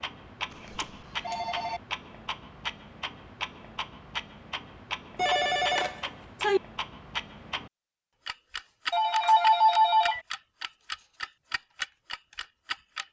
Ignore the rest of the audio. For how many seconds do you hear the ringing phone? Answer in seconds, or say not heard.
4 s.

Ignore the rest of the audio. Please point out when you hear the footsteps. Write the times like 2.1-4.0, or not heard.
not heard.